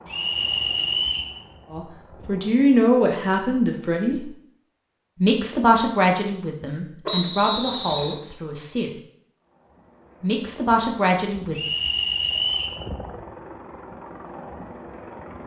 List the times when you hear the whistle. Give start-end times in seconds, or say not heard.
0.1-1.3, 7.0-8.2, 11.6-12.8.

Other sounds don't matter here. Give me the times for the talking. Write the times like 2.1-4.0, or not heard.
1.7-4.3, 5.2-8.9, 10.2-11.6.